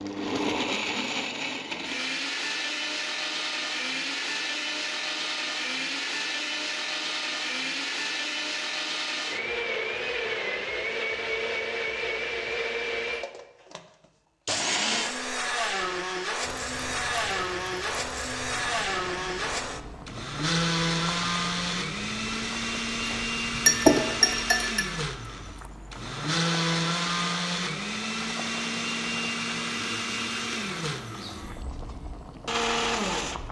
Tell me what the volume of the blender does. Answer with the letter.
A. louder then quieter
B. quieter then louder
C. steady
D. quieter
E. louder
C.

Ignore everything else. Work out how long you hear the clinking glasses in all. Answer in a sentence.
The clinking glasses can be heard for 2 seconds in total.